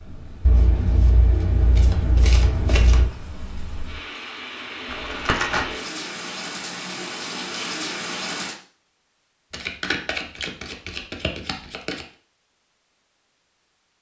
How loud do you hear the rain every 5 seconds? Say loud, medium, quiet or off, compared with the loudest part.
medium, loud, off.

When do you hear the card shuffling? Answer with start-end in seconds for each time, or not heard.
0.4-3.1, 4.9-5.7, 9.5-12.1.